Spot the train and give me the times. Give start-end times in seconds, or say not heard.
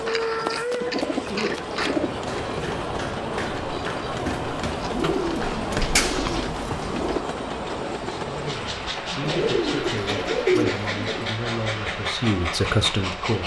0.0-13.4.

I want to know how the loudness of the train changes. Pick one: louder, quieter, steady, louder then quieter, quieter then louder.
steady.